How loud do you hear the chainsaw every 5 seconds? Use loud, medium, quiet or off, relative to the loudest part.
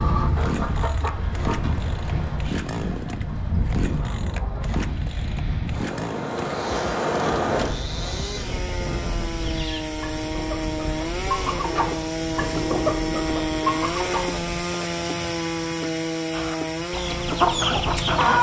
medium, medium, loud, loud.